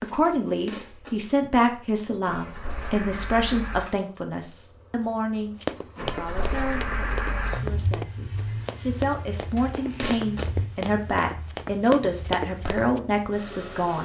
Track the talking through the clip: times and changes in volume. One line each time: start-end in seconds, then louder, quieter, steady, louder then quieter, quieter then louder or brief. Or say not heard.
0.0-13.9 quieter then louder.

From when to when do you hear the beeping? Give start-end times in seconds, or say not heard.
not heard.